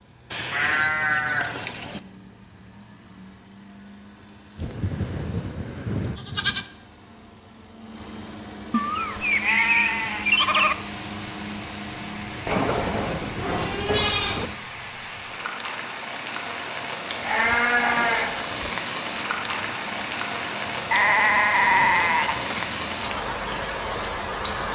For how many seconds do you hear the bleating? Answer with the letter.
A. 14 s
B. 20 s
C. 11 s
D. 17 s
C.